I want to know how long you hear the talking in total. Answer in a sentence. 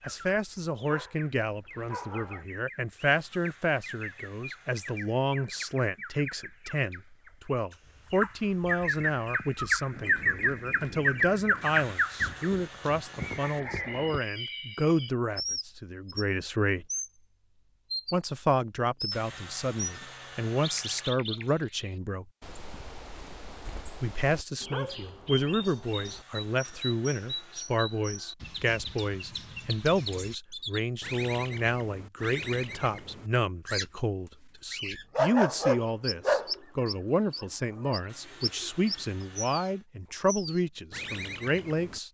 You can hear the talking for 39 seconds altogether.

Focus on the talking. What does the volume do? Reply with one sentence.
The loudness of the talking stays about the same.